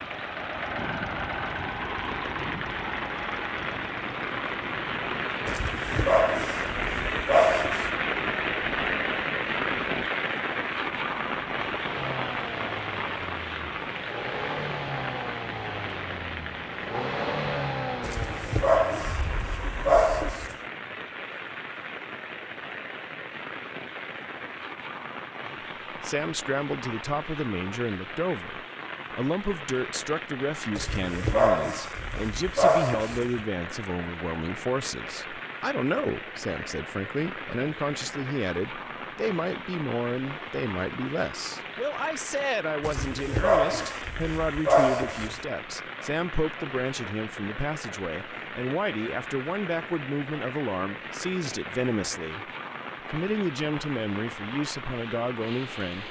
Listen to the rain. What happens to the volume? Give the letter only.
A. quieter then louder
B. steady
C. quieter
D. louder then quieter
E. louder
C.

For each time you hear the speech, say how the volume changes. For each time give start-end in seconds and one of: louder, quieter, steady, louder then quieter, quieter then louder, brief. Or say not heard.
25.9-52.5 steady
53.1-56.0 brief.